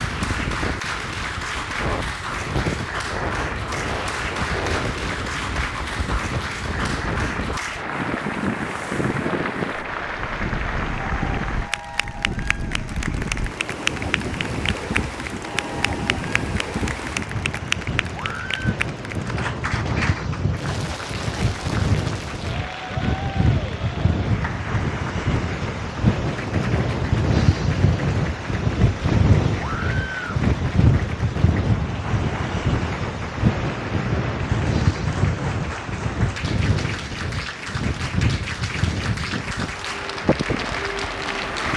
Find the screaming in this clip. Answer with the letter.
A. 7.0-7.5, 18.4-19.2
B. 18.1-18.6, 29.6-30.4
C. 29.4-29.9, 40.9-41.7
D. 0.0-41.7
B.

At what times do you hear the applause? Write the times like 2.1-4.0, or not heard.
0.0-41.7.